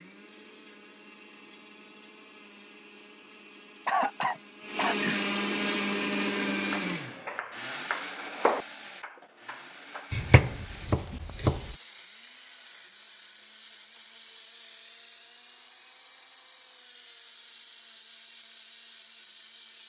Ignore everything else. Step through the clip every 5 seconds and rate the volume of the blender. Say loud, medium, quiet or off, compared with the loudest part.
medium, loud, quiet, quiet.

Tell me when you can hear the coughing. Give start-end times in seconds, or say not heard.
3.9-5.2.